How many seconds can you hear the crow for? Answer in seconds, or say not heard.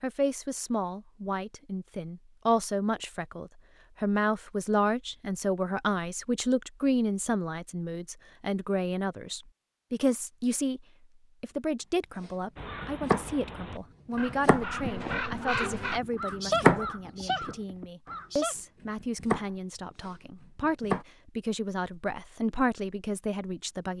6 s.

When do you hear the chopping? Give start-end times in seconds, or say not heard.
12.2-13.3, 14.2-15.4, 16.0-18.1, 19.0-21.1.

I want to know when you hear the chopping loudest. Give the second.
17 s.